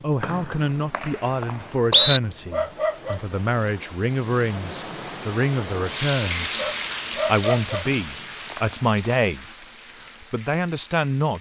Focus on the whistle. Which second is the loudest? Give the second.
2 s.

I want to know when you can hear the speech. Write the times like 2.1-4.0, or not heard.
0.0-9.4, 10.2-11.3.